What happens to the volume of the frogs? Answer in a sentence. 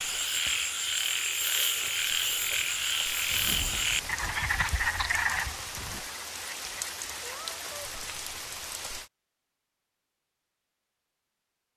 The loudness of the frogs goes down.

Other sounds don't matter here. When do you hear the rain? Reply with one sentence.
The rain can be heard from 0.0 to 9.1 s.